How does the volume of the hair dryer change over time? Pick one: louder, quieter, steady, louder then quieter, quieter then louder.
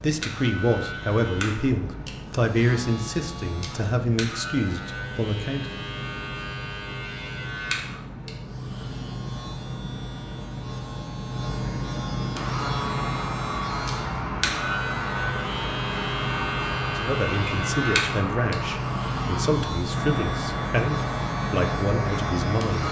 steady.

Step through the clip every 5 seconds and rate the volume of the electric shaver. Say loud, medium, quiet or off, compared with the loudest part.
medium, medium, loud, loud, loud.